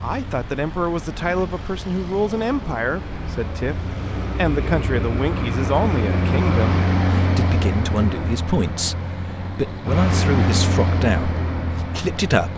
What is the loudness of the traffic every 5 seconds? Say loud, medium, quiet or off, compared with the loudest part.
medium, loud, loud.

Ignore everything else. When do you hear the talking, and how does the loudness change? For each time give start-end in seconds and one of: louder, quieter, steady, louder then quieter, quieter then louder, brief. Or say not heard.
0.0-12.5 steady.